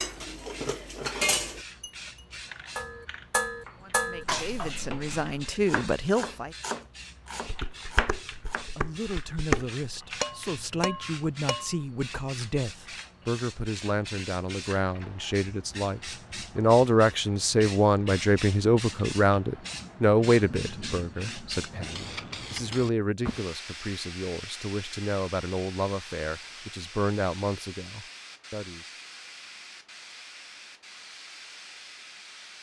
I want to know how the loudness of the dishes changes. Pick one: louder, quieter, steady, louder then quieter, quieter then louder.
quieter then louder.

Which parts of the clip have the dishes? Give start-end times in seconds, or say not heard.
0.0-4.7, 7.5-11.8.